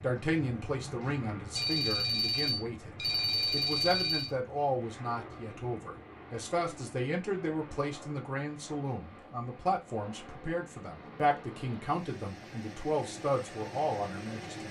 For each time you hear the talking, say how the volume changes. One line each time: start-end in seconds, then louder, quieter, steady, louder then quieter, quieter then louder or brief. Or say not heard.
0.0-14.6 steady.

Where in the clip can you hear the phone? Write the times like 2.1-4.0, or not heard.
1.6-4.3.